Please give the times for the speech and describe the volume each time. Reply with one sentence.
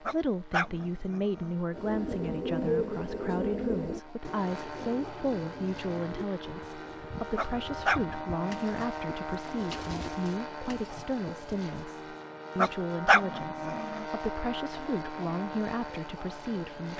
The speech can be heard from 0.0 to 16.9 s, at a steady volume.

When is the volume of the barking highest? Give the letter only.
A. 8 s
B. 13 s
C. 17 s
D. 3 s
B.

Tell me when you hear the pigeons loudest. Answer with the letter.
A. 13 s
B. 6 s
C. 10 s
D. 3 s
D.